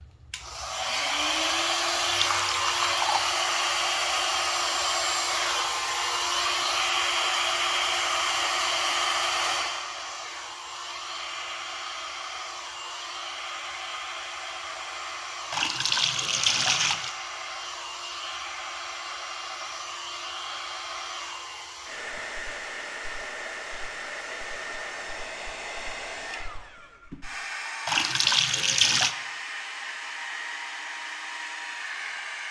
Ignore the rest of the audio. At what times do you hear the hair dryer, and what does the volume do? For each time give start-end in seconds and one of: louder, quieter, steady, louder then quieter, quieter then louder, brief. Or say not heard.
0.0-32.4 quieter.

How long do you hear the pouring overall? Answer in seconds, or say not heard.
4 s.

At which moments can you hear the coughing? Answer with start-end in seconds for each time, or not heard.
not heard.